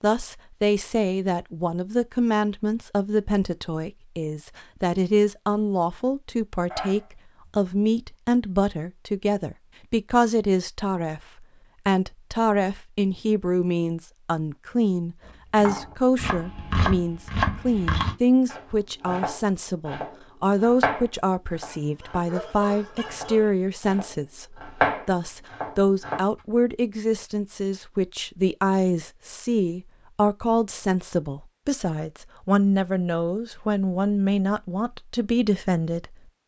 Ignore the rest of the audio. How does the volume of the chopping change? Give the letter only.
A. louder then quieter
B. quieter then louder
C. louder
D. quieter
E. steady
B.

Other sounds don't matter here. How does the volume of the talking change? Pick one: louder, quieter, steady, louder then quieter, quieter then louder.
steady.